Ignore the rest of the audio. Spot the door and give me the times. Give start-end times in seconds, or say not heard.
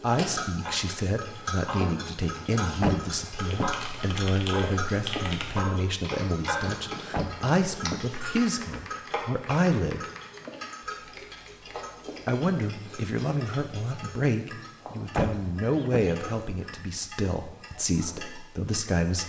2.8-3.9, 7.1-8.2, 15.2-16.1.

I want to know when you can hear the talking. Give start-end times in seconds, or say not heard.
0.0-10.0, 12.2-19.2.